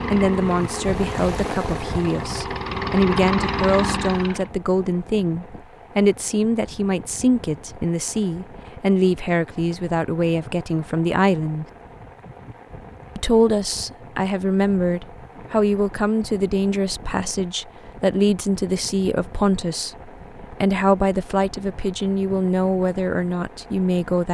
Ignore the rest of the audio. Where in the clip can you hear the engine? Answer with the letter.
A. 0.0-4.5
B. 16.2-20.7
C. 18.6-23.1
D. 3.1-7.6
A.